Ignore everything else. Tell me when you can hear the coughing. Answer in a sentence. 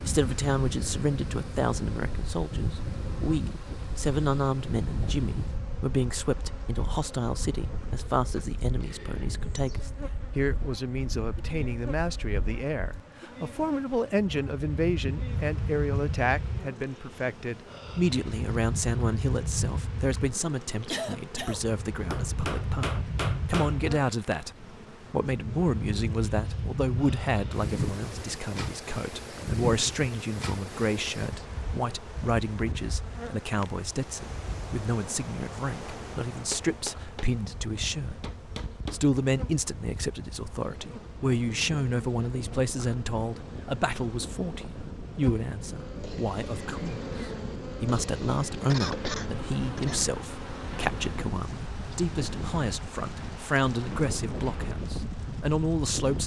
The coughing can be heard from 19.9 to 21.6 s and from 48.7 to 50.0 s.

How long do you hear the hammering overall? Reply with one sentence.
You can hear the hammering for 4 seconds altogether.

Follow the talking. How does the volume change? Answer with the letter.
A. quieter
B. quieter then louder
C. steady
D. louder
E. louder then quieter
C.